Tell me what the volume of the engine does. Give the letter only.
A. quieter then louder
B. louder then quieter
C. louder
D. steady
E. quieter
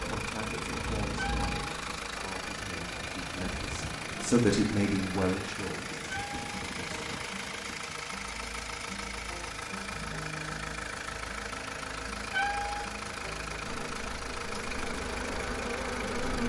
D.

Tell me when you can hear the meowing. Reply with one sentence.
The meowing can be heard from 1.1 to 1.7 s, from 6.0 to 6.6 s and from 12.3 to 12.9 s.